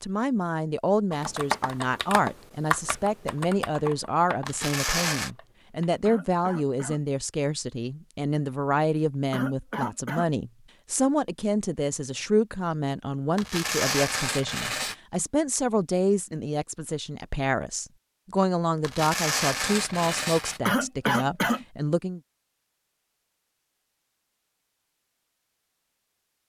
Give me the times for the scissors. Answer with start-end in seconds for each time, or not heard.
not heard.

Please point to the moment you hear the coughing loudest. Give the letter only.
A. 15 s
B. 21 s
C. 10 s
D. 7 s
B.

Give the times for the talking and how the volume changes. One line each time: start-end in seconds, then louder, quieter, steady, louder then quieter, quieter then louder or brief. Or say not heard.
0.0-22.2 steady.